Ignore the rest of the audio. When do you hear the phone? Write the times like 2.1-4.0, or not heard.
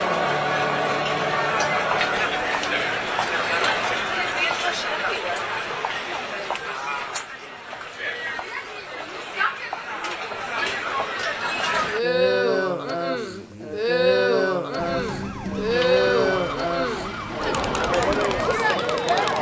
not heard.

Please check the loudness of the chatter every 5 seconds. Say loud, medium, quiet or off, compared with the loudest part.
loud, medium, loud, loud.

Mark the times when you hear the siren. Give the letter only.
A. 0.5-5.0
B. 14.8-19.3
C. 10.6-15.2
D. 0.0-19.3
B.